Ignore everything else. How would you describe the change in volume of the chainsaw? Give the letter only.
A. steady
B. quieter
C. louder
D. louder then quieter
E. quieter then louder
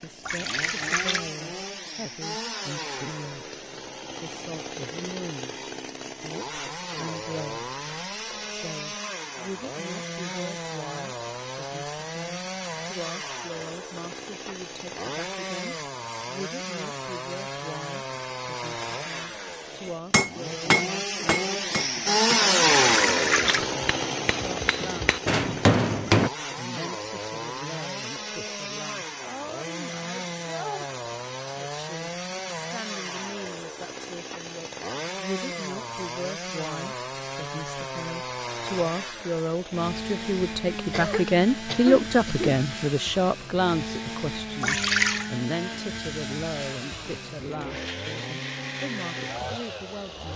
D.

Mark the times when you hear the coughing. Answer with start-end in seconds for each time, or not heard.
40.9-42.5.